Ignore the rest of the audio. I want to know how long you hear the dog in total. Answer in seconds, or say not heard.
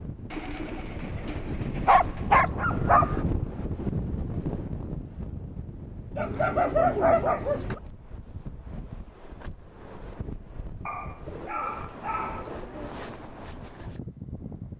5 s.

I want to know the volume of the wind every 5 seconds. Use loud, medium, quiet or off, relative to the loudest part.
loud, medium, medium.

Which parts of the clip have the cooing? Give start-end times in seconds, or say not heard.
0.3-2.3, 6.2-7.8, 11.2-12.7.